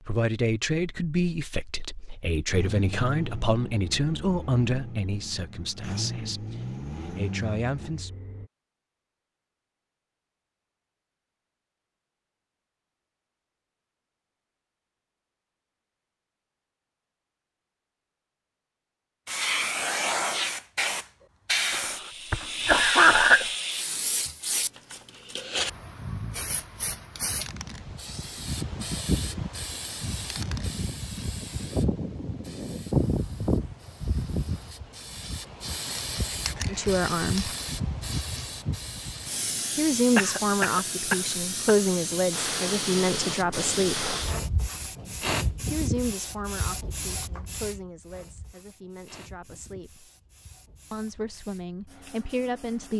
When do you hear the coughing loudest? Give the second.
23 s.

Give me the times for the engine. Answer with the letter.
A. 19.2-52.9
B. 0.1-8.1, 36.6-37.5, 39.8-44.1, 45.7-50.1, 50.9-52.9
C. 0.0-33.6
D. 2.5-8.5
D.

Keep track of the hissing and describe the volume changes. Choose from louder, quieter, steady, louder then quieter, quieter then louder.
quieter.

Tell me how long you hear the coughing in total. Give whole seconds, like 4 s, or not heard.
3 s.